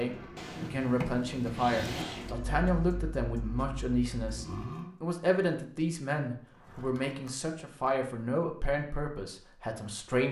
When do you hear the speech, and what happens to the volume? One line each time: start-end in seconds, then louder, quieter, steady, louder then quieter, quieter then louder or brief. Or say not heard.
0.0-10.2 steady.